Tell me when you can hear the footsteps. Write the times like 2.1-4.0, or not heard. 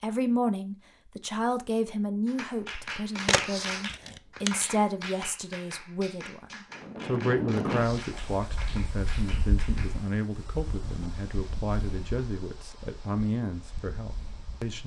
not heard.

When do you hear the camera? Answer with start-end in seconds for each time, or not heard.
3.2-4.5.